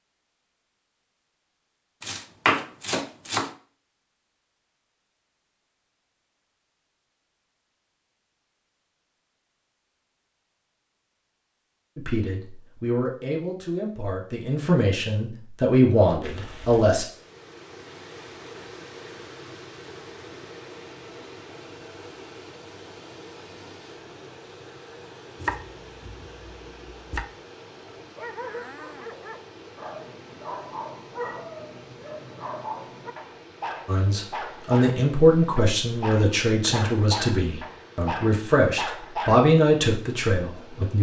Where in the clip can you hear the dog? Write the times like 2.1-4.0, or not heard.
28.0-39.4.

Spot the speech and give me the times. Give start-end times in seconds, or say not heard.
11.9-17.1, 33.9-40.9.